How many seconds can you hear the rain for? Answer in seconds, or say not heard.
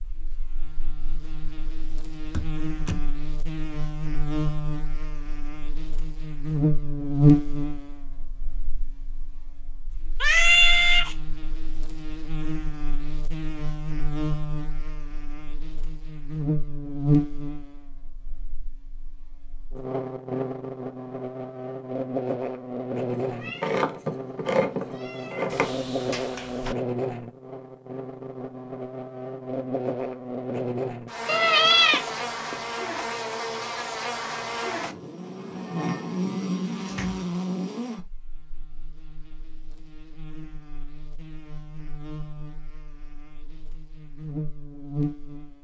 not heard.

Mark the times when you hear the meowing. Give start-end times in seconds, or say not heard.
10.2-11.2, 23.2-25.7, 31.2-32.5.